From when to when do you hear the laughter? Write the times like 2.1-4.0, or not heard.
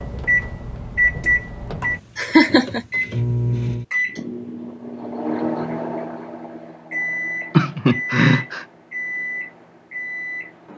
2.1-2.9, 7.5-8.7.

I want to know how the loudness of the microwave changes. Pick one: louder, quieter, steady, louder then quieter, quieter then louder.
quieter.